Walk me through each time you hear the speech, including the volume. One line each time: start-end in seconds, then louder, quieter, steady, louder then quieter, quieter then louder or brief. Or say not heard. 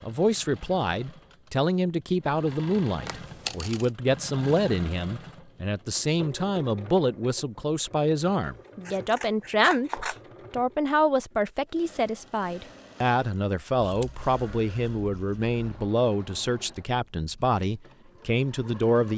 0.0-19.1 steady.